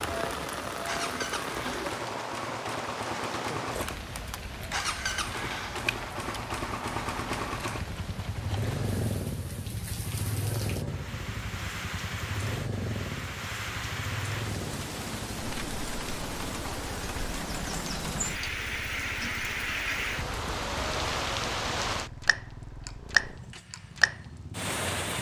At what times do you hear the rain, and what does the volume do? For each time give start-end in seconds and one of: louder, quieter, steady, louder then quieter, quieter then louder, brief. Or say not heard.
0.0-25.1 quieter then louder.